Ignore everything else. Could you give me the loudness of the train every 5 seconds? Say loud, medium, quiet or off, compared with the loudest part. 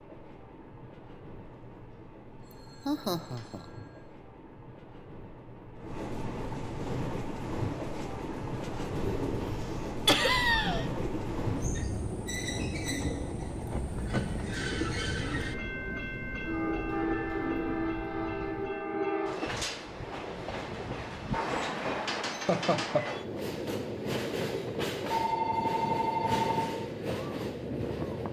quiet, loud, loud, loud, loud, loud.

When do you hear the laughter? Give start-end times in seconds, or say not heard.
2.9-3.6, 10.1-10.8, 22.3-23.1.